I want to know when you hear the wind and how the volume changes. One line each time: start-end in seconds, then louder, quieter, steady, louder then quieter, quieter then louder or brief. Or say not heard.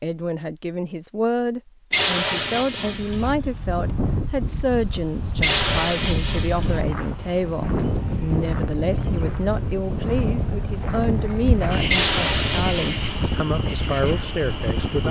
3.1-15.0 steady.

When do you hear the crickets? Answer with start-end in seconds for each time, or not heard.
6.7-15.0.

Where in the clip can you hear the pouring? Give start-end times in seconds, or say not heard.
1.9-3.4, 5.4-6.8, 11.9-13.3.